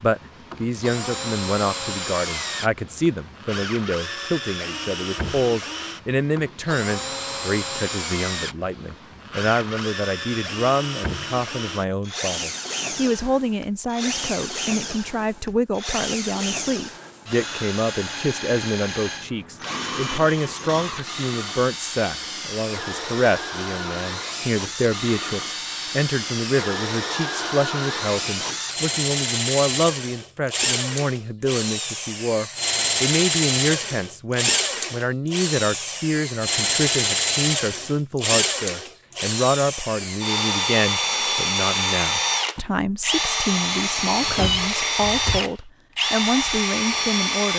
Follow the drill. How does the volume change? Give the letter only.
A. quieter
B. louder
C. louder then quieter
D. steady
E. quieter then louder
B.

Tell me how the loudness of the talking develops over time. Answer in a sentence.
The volume of the talking stays about the same.